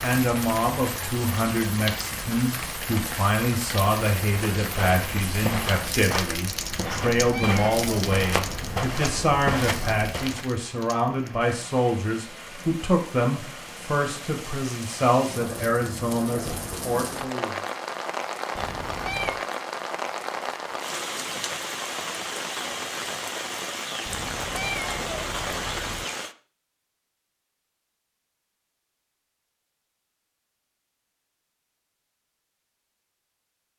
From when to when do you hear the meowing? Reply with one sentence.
You can hear the meowing from 6.8 to 8.8 s, from 18.6 to 19.4 s and from 24.1 to 26.1 s.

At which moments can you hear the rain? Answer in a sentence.
You can hear the rain from 0.0 to 26.4 s.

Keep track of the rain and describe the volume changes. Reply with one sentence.
The loudness of the rain goes down, then up.